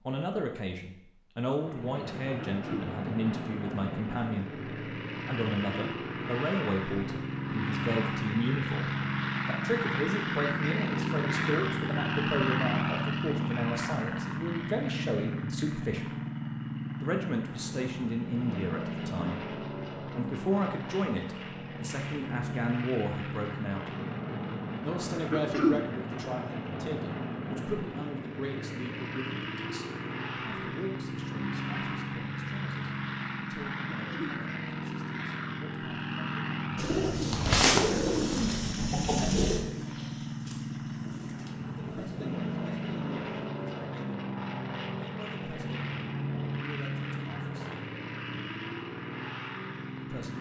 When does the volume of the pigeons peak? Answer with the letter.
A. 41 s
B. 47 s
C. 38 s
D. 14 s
C.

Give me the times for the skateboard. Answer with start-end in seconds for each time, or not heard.
not heard.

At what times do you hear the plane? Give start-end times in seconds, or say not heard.
1.5-50.3.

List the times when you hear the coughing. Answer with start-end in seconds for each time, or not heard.
2.4-2.9, 25.3-25.8, 33.9-34.4.